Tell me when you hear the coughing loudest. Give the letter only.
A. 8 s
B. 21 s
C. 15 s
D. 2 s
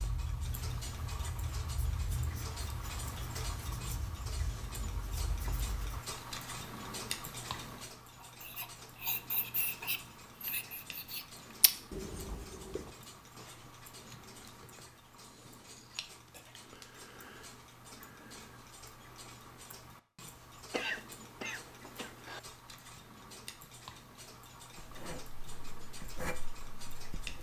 B.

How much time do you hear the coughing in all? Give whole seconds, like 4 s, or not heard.
2 s.